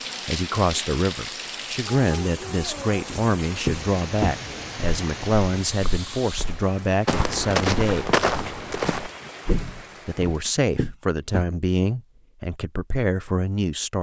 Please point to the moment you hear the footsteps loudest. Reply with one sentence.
The volume of the footsteps peaks at 8 seconds.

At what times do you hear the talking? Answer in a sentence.
The talking can be heard from 0.2 to 8.1 s and from 10.1 to 13.9 s.